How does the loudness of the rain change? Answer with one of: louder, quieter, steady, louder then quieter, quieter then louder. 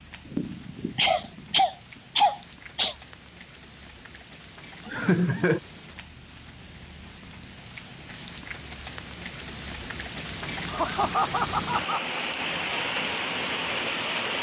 louder.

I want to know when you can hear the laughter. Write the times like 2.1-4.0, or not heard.
0.2-3.0, 4.8-5.6, 10.7-12.0.